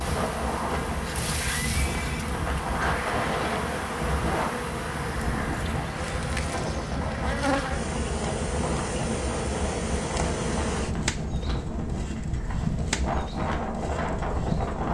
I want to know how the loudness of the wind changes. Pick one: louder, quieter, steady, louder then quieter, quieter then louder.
steady.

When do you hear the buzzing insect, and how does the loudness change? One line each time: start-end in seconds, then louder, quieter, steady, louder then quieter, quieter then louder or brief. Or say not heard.
0.0-14.8 steady.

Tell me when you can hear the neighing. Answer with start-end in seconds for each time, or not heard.
1.4-2.3.